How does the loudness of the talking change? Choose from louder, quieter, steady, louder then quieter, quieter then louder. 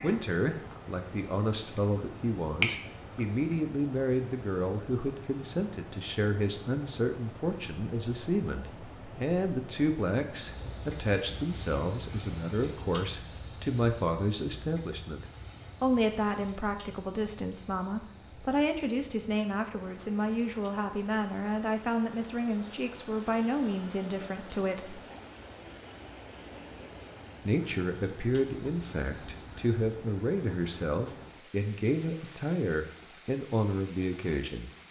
steady.